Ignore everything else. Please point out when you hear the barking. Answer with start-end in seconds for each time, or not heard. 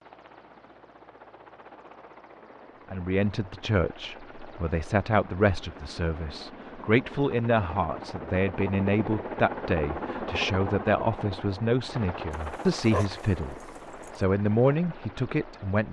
12.3-14.2.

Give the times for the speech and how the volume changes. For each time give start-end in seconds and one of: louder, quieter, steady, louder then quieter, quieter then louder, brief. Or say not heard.
2.9-13.6 steady
14.2-15.8 brief.